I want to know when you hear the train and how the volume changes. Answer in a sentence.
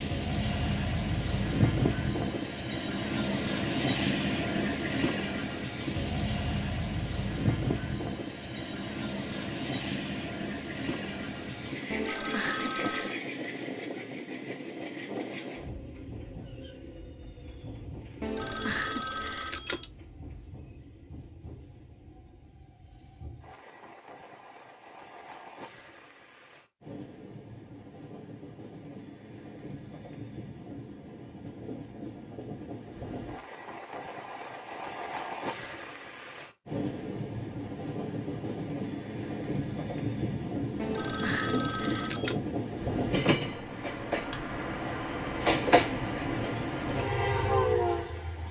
The train can be heard from 0.0 to 48.4 s, getting quieter then louder.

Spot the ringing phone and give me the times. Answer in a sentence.
The ringing phone can be heard from 11.9 to 13.2 s, from 18.2 to 19.9 s and from 40.8 to 42.4 s.